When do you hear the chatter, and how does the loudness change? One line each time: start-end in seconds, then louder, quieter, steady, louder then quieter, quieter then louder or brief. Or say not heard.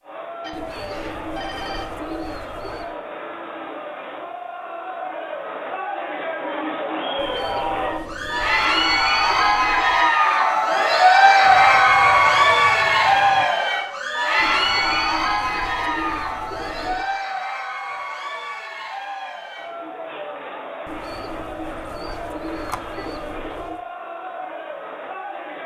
0.0-25.6 louder then quieter.